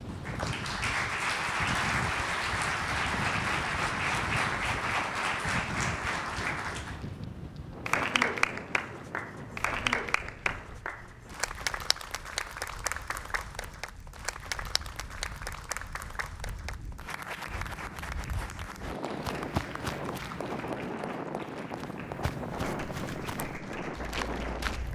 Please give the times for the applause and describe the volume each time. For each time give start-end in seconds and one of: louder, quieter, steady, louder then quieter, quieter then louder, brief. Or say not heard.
0.0-24.8 quieter.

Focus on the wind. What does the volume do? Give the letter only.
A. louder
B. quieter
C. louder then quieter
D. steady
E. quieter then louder
E.